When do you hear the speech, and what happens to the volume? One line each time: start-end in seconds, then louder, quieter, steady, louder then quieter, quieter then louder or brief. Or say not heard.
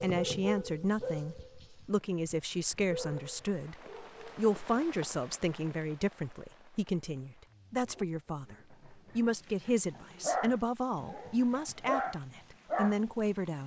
0.0-13.6 steady.